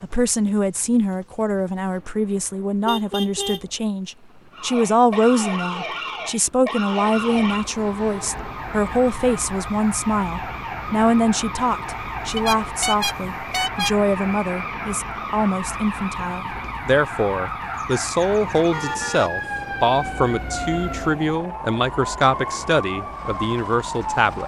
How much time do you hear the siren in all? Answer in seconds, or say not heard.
20 s.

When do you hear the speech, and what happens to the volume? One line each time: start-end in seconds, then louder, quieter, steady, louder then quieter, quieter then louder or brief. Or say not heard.
0.0-24.4 steady.